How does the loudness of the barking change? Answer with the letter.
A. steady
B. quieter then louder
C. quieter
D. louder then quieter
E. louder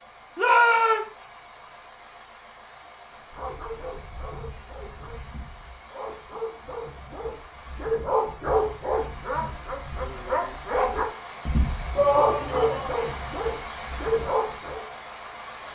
E.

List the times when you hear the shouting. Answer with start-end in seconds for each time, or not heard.
0.3-1.0, 11.9-12.9.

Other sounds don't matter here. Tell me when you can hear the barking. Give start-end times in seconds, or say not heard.
3.3-14.8.